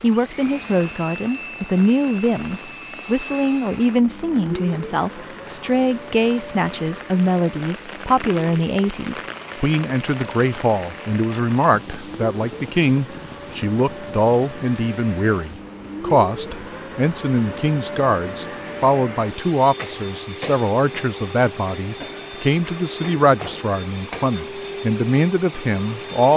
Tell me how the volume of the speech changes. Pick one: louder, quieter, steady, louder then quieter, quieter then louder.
steady.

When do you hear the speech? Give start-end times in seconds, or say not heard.
0.0-26.3.